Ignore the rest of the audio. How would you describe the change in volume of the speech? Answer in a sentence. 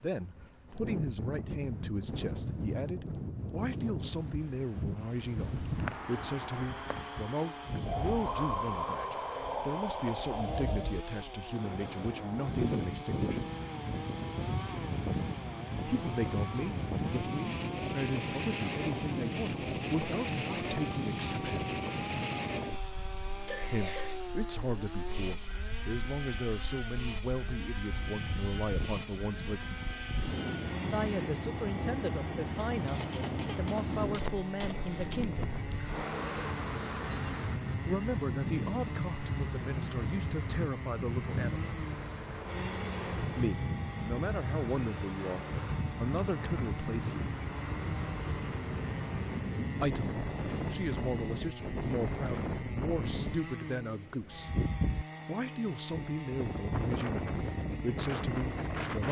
The volume of the speech stays about the same.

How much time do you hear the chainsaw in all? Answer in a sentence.
You can hear the chainsaw for 53 seconds altogether.